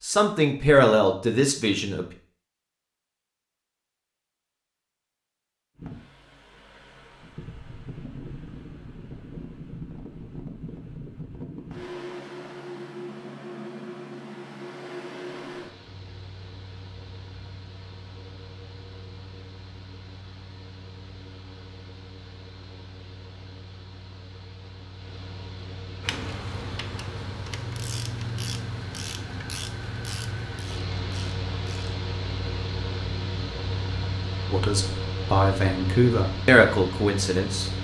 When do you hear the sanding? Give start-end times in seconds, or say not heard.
not heard.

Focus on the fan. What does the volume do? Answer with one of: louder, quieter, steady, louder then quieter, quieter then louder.
quieter then louder.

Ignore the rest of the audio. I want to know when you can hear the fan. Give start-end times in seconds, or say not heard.
5.8-37.8.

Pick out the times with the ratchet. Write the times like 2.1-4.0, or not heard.
26.0-31.9.